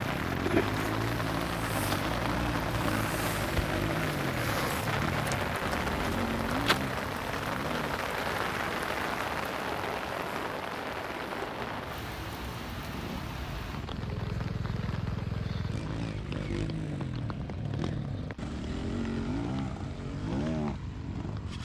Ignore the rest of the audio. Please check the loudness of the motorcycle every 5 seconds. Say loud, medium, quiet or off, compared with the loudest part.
loud, loud, medium, loud, loud.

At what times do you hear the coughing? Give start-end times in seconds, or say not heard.
not heard.